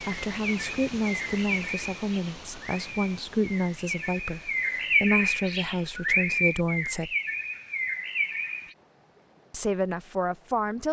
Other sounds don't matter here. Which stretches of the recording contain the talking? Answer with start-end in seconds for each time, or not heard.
0.0-7.1, 9.5-10.8.